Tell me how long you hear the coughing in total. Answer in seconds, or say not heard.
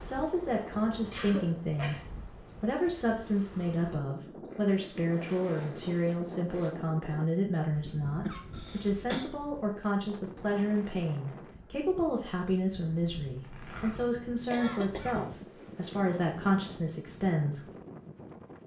3 s.